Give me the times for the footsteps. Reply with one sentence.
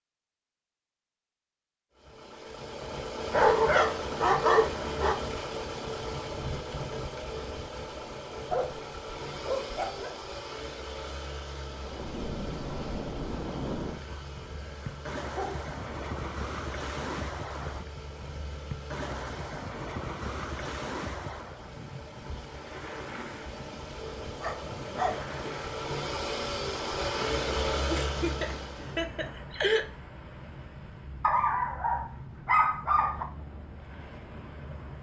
The footsteps can't be heard in this clip.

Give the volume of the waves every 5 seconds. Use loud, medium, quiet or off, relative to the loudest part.
off, off, loud, loud, loud, medium, medium.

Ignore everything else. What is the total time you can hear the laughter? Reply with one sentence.
The laughter can be heard for 2 seconds in total.